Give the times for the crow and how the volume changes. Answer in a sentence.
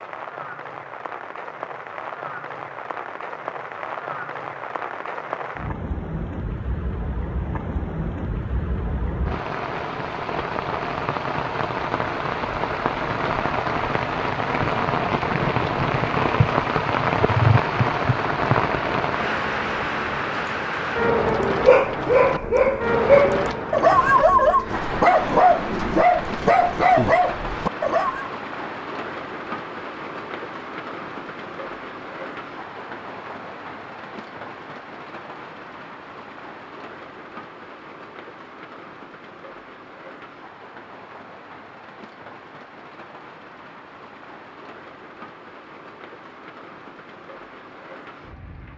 The crow can't be heard in this clip.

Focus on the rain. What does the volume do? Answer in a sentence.
The volume of the rain goes up, then down.